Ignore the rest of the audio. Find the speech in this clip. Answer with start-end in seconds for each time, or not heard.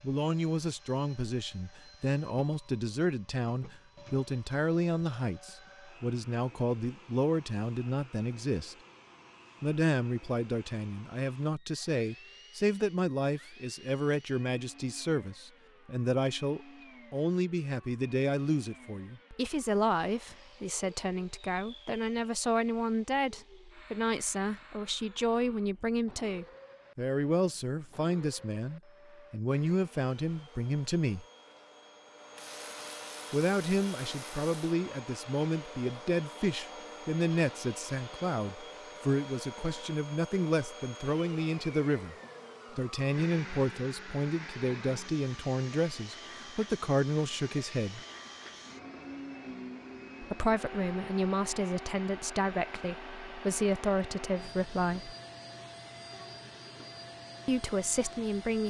0.0-8.8, 9.6-31.2, 33.3-42.1, 42.8-48.0, 50.2-55.1, 57.5-58.6.